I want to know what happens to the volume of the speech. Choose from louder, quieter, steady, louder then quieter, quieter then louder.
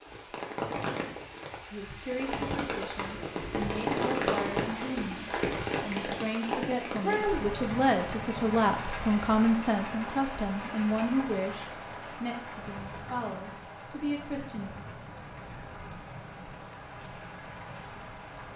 louder then quieter.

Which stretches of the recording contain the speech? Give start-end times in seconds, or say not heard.
1.7-14.7.